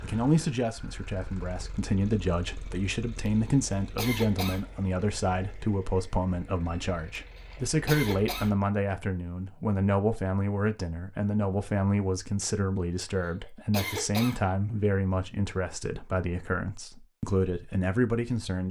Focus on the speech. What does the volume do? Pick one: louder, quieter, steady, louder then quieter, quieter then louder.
steady.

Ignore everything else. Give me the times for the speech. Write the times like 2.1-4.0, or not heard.
0.0-18.6.